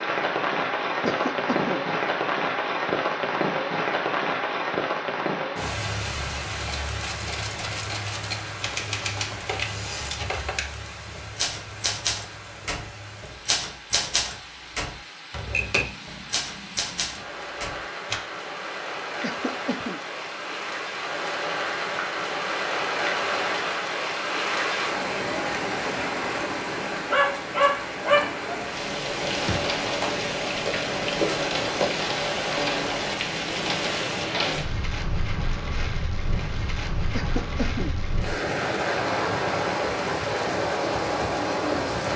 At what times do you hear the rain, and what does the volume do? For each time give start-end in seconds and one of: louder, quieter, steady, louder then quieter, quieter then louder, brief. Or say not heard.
0.0-42.1 quieter then louder.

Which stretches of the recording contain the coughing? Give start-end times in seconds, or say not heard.
1.0-1.9, 19.2-20.0, 37.1-38.0.